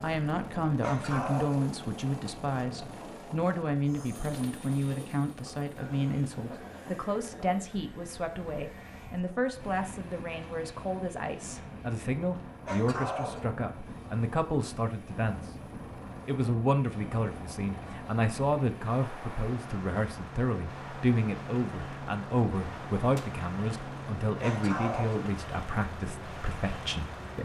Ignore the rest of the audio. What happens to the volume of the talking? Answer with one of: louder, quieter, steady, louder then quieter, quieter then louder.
steady.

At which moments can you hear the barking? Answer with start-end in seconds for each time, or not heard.
0.8-1.6, 12.7-13.6, 24.4-25.2.